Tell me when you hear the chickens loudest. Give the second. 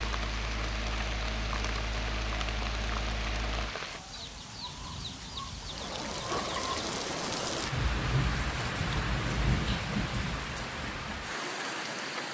6 s.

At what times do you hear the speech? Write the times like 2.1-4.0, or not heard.
not heard.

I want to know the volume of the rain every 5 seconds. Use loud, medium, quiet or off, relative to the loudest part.
medium, loud, loud.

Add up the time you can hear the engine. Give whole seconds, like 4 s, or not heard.
4 s.